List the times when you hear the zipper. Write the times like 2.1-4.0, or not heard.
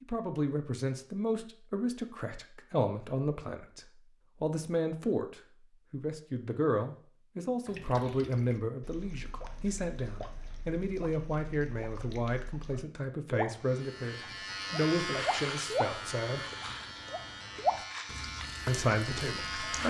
not heard.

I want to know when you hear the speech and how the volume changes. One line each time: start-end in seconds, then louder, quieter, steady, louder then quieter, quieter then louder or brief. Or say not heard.
0.0-16.4 steady
18.6-19.8 brief.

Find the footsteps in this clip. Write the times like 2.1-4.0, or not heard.
not heard.